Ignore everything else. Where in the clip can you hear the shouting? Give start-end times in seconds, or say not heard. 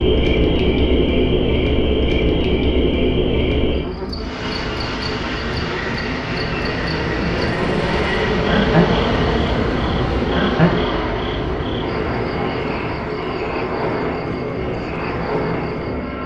not heard.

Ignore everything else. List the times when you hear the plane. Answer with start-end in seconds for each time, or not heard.
4.2-16.2.